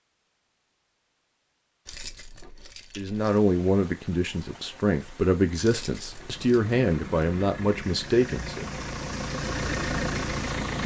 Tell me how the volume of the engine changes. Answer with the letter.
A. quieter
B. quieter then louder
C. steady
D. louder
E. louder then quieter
D.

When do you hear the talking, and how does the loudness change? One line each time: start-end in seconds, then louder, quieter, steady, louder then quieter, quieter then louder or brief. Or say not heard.
3.0-8.7 steady.